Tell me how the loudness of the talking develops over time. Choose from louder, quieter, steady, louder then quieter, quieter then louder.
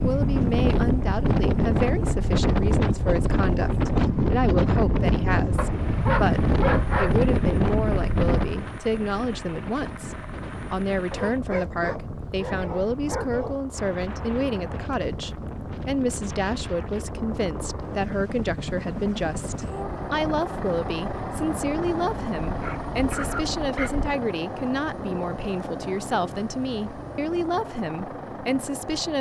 steady.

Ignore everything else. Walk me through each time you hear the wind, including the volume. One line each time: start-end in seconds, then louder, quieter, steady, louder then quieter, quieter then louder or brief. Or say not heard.
0.0-23.7 quieter.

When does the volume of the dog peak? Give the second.
7 s.